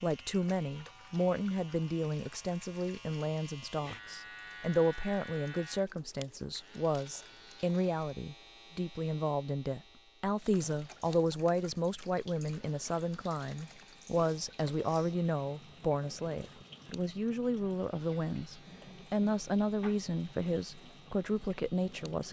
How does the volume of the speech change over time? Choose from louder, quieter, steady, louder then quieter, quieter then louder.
steady.